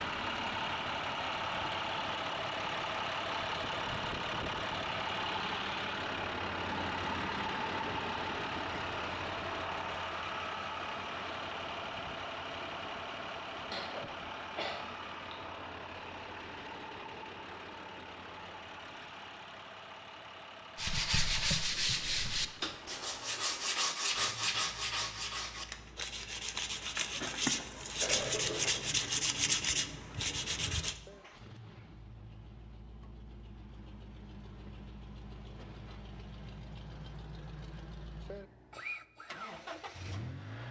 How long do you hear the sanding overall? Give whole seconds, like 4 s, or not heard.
10 s.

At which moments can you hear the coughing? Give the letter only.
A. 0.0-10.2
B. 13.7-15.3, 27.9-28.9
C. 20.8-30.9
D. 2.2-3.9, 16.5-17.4
B.